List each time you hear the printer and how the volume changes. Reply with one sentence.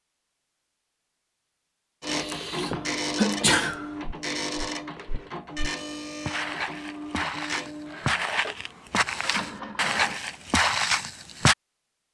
You can hear the printer from 2.0 to 10.2 s, getting quieter.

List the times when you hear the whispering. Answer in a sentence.
The whispering can't be heard in this clip.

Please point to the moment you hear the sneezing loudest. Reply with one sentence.
The loudest moment of the sneezing is at 3 seconds.